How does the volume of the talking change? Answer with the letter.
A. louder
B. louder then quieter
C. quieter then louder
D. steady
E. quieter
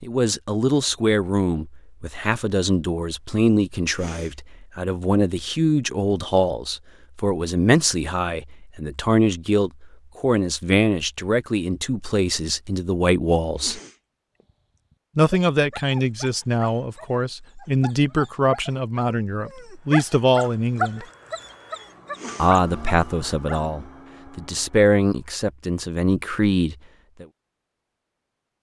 D.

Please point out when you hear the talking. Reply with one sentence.
You can hear the talking from 0.0 to 13.8 s, from 15.2 to 21.1 s and from 22.4 to 27.2 s.